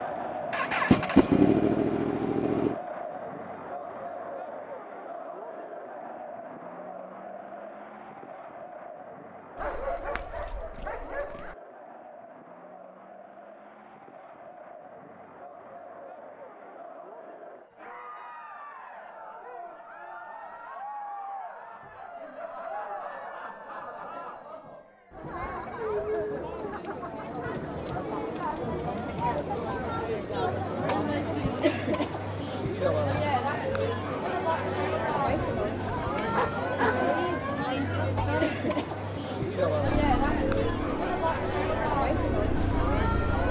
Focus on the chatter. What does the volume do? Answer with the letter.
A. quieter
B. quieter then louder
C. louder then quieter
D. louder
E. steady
B.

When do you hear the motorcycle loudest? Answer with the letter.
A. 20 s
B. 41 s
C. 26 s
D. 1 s
D.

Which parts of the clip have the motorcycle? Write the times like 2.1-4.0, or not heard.
0.5-2.8, 39.8-43.4.